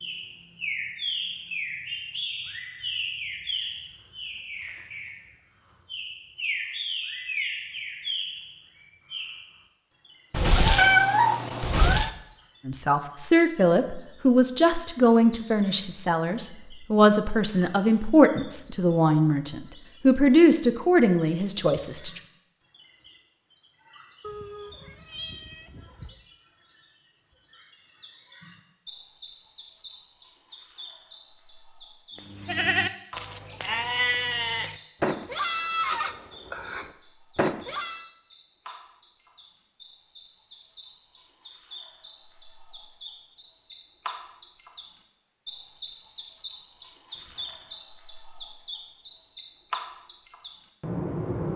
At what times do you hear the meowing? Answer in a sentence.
The meowing can be heard from 10.3 to 12.1 s, from 24.2 to 26.2 s and from 47.1 to 47.9 s.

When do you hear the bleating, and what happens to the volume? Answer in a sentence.
The bleating can be heard from 32.1 to 38.1 s, at a steady volume.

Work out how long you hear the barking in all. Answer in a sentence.
You can't hear the barking here.